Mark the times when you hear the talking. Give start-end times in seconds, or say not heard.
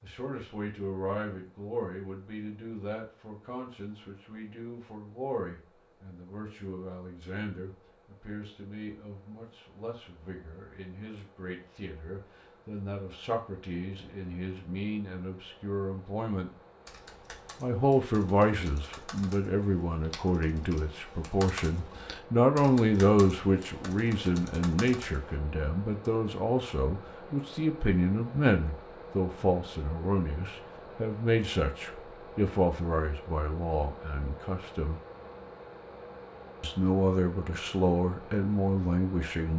0.0-16.5, 17.6-35.0, 36.6-39.5.